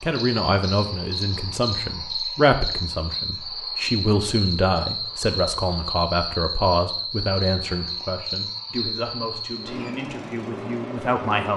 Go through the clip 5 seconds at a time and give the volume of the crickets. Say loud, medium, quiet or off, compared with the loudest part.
loud, loud, off.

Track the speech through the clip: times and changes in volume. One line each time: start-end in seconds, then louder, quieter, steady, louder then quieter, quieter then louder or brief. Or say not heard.
0.0-11.5 quieter.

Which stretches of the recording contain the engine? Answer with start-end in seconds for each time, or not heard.
9.5-11.5.